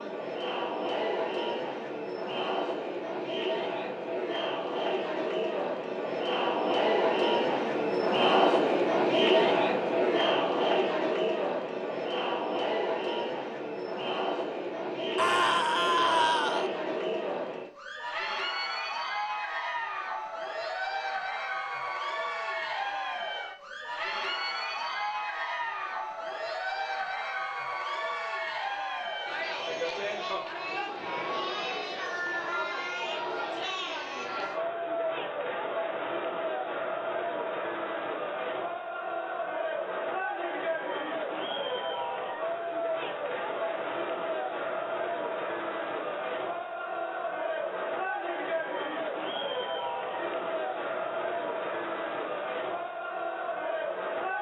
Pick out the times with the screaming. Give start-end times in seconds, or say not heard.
15.2-16.6.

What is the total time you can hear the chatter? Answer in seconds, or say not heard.
54 s.